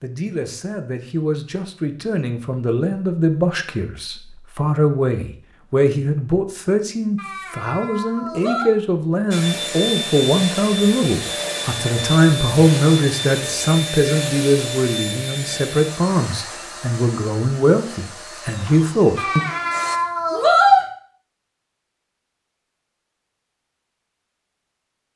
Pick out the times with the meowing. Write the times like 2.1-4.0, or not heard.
7.2-8.7, 19.1-20.9.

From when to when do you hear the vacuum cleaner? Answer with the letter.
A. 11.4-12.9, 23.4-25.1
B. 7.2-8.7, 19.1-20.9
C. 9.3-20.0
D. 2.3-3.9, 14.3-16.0
C.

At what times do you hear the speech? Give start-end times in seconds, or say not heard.
0.0-19.4.